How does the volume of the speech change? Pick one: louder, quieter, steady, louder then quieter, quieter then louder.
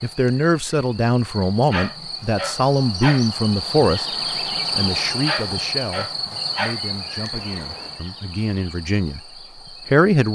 quieter then louder.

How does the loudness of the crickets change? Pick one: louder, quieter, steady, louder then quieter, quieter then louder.
louder then quieter.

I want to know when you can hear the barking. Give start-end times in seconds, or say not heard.
1.7-3.2, 5.2-6.8.